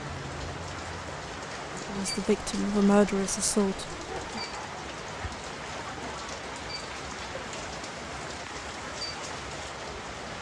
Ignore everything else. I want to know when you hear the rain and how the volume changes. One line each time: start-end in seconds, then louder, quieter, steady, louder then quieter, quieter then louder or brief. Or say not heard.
0.0-10.3 steady.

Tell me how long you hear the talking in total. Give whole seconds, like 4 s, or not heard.
3 s.